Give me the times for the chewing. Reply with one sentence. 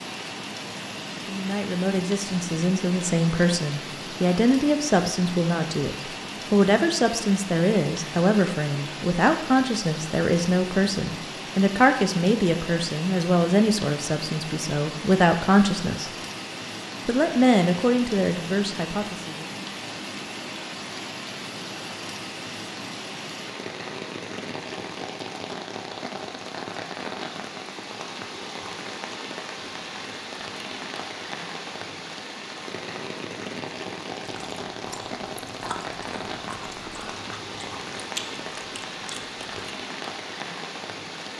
The chewing can be heard from 34.2 to 39.6 s.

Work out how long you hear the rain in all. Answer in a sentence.
The rain can be heard for 41 seconds in total.